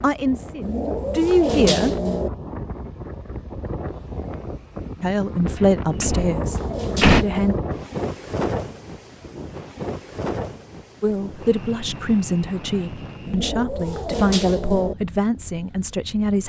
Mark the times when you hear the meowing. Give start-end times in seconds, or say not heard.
0.6-2.3, 6.0-7.6, 13.2-14.9.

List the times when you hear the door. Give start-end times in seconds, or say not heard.
6.0-7.2.